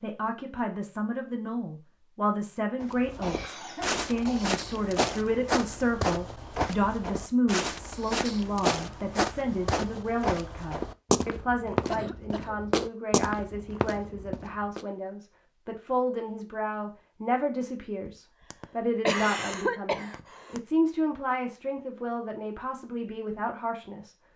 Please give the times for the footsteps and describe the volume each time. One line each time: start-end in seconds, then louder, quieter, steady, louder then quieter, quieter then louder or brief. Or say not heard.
2.8-14.8 steady.